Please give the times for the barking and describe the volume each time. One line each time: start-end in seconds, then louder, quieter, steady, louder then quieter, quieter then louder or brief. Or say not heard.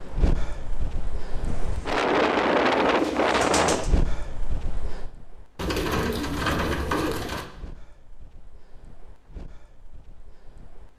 not heard.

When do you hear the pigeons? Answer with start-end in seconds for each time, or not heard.
1.4-4.0, 5.5-7.5.